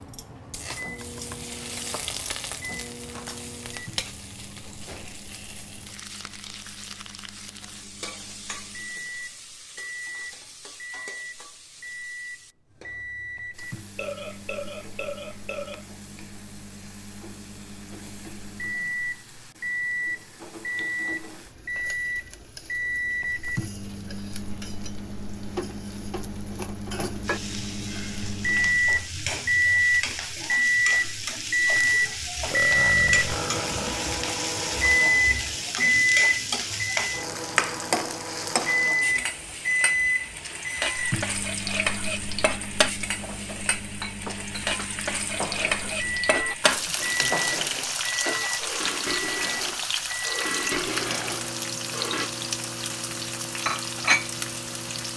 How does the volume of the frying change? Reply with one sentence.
The volume of the frying goes down, then up.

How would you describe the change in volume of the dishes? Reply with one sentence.
The loudness of the dishes goes up.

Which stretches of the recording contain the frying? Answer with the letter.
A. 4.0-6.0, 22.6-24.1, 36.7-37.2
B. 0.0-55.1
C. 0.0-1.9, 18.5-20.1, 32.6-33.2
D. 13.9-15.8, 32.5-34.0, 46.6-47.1
B.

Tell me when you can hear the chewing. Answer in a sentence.
The chewing can't be heard in this clip.